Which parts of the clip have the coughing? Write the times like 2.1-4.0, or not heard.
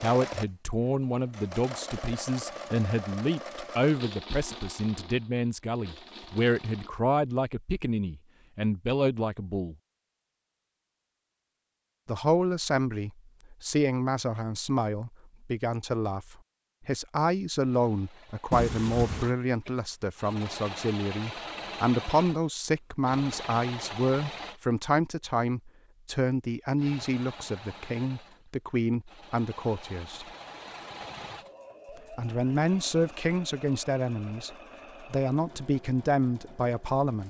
18.5-19.4.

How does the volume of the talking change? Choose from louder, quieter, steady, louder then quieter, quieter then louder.
steady.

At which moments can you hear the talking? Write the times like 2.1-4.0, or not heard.
0.0-9.8, 12.1-30.2, 32.1-37.2.